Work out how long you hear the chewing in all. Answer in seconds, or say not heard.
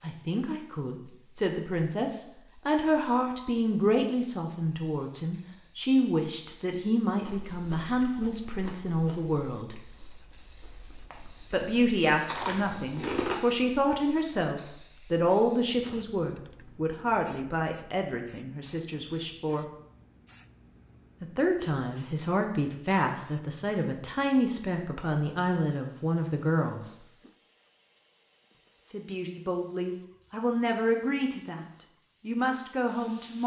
6 s.